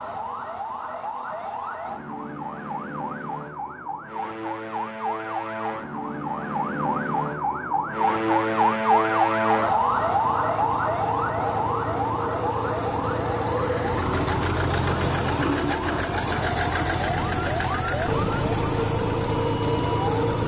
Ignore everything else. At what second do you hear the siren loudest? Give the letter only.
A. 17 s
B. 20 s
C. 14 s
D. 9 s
D.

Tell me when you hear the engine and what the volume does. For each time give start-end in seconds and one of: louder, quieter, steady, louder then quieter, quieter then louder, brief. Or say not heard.
9.8-20.4 louder.